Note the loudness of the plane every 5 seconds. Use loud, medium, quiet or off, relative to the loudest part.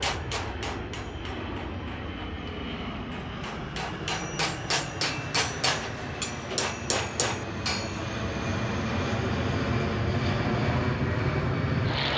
medium, medium, loud.